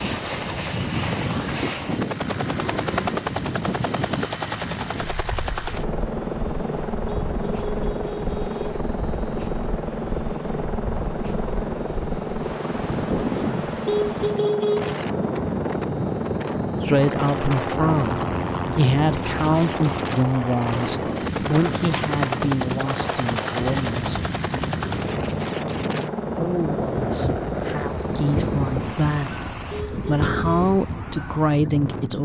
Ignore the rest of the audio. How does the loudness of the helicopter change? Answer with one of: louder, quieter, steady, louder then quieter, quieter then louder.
steady.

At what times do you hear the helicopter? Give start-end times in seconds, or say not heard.
0.0-29.9.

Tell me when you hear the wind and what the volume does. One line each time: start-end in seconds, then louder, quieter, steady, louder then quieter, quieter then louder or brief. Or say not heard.
0.0-32.2 quieter then louder.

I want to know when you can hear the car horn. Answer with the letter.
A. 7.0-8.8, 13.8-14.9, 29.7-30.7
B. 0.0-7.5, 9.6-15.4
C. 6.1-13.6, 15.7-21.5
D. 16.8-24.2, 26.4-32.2
A.